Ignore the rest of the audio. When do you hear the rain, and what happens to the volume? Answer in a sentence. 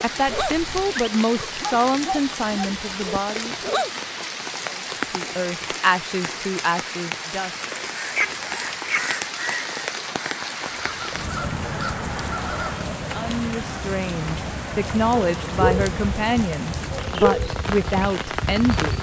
You can hear the rain from 0.0 to 18.9 s, at a steady volume.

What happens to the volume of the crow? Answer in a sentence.
The loudness of the crow goes down, then up.